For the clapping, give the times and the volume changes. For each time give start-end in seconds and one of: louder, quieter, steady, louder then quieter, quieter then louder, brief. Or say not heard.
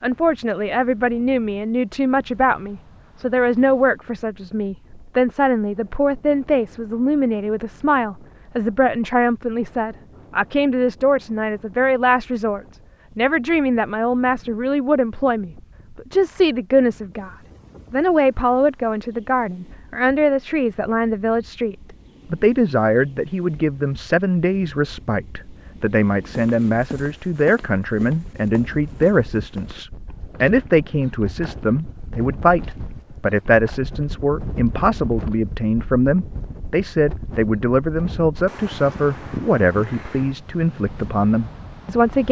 not heard.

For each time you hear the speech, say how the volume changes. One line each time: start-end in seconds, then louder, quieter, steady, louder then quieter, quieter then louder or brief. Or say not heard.
0.0-42.2 steady.